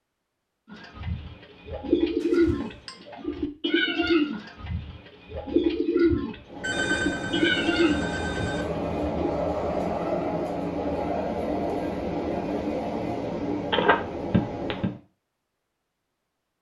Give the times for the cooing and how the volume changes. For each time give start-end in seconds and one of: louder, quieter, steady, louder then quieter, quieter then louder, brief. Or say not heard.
0.7-9.3 steady.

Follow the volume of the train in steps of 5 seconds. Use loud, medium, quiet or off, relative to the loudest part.
off, loud, loud, off.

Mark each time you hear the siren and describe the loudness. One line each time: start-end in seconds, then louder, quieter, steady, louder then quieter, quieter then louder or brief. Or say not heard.
not heard.